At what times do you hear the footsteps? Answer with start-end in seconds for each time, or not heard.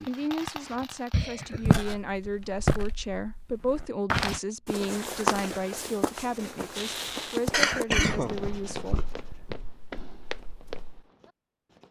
1.5-11.0.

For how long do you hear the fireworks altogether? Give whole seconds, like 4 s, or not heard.
7 s.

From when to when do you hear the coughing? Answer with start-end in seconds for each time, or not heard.
1.1-1.8, 7.5-9.6.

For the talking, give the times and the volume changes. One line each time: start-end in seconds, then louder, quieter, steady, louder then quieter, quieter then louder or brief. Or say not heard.
0.0-9.1 steady.